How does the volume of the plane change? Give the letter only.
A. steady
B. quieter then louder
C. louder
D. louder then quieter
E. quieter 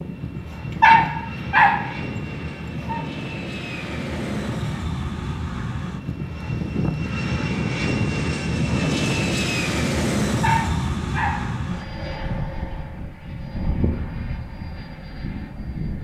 D.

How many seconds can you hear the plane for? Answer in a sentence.
The plane can be heard for 16 seconds in total.